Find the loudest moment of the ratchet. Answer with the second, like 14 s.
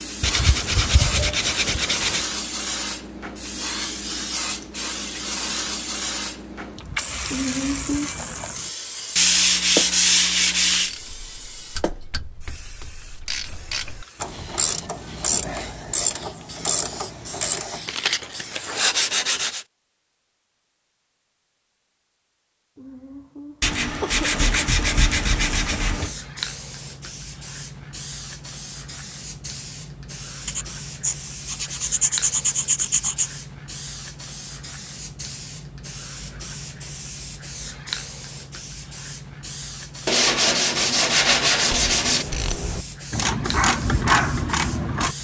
44 s.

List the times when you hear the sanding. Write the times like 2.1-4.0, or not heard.
0.2-2.2, 9.2-10.9, 17.9-19.6, 23.6-26.1, 30.4-33.3, 40.0-42.2.